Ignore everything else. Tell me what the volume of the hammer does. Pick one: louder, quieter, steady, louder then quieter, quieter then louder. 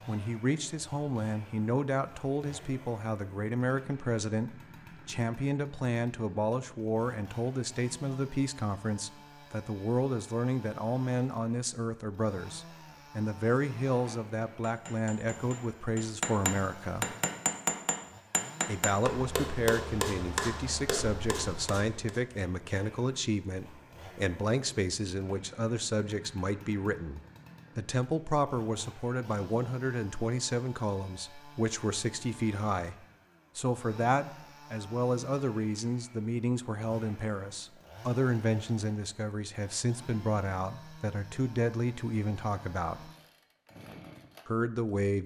louder then quieter.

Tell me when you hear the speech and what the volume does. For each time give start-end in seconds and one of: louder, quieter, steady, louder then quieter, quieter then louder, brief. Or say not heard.
0.1-17.1 steady
18.6-43.1 steady
44.5-45.2 brief.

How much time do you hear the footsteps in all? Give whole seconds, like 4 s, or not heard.
not heard.